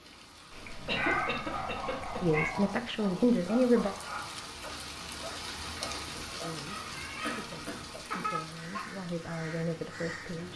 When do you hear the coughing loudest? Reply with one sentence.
The volume of the coughing peaks at 1 second.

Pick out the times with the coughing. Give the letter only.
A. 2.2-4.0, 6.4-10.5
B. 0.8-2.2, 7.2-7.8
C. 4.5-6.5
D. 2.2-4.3
B.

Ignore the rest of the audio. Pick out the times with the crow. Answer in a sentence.
The crow can be heard from 8.4 to 10.5 s.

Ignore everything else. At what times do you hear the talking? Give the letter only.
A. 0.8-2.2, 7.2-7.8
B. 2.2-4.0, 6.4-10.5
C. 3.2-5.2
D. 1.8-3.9
B.